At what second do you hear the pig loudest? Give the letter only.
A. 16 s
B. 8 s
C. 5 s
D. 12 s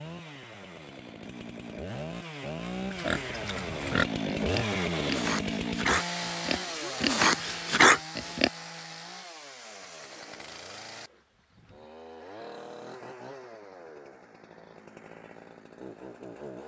B.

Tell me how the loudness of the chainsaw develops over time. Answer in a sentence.
The loudness of the chainsaw goes up, then down.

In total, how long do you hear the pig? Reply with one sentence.
You can hear the pig for 6 seconds altogether.